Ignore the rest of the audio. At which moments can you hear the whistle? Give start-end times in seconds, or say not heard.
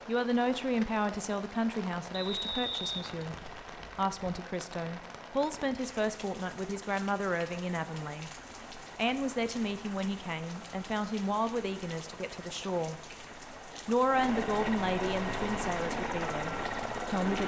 2.1-3.5.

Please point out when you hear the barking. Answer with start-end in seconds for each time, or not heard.
not heard.